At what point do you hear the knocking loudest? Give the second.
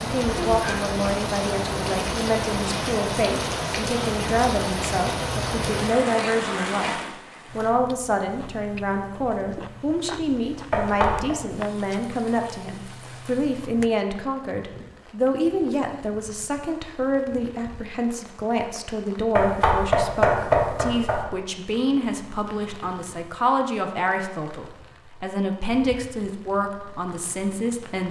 20 s.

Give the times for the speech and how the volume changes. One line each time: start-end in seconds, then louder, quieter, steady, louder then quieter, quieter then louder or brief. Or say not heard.
0.0-28.0 steady.